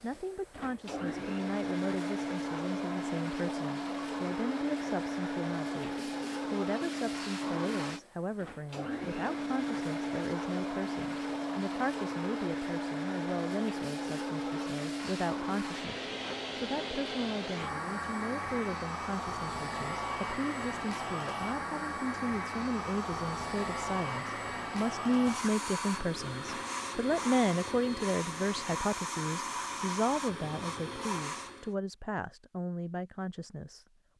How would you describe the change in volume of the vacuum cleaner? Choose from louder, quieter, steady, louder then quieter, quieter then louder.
steady.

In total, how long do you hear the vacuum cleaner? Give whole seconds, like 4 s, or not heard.
32 s.